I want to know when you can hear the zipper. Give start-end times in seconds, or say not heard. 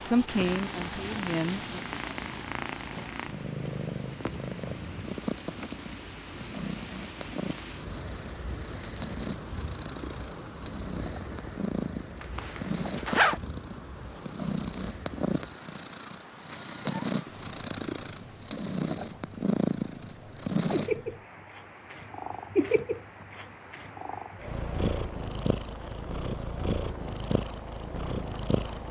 12.2-13.4.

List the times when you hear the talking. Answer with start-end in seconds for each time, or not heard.
0.0-1.8.